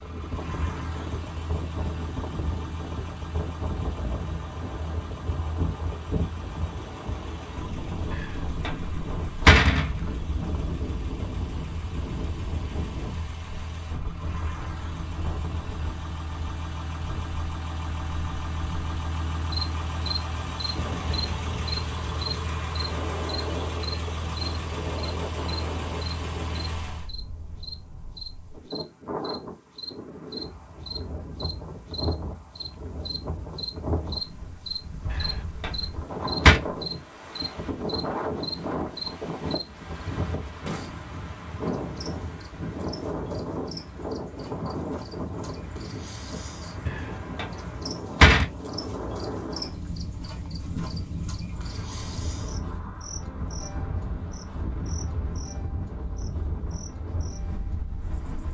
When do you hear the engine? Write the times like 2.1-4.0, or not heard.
0.0-27.1.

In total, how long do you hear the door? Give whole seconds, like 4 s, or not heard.
5 s.